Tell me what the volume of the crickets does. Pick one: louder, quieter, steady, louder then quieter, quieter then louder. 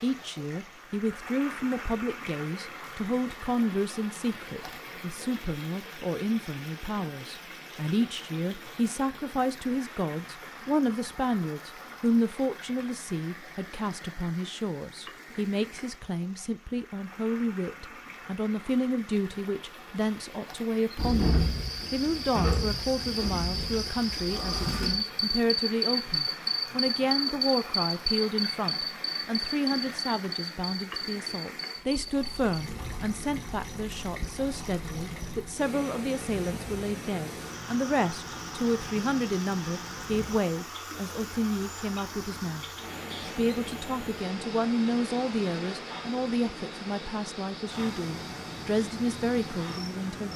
quieter.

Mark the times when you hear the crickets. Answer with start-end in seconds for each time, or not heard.
20.9-50.3.